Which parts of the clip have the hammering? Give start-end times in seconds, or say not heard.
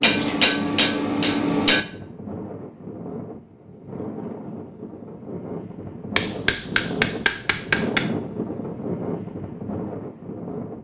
0.0-1.9, 6.2-8.1.